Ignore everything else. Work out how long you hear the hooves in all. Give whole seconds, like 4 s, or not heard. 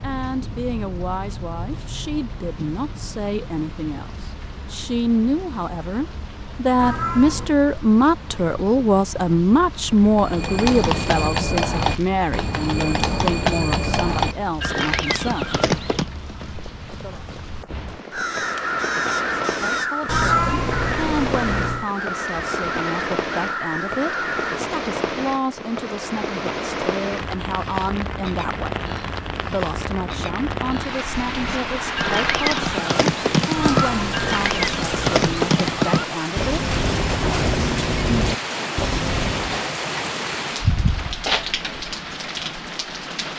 17 s.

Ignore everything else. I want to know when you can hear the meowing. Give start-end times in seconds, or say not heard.
6.8-7.5, 20.1-21.9, 33.5-35.5.